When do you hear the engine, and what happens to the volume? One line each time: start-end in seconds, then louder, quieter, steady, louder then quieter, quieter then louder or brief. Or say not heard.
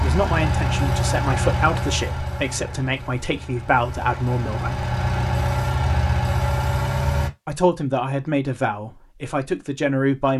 0.0-7.3 quieter then louder.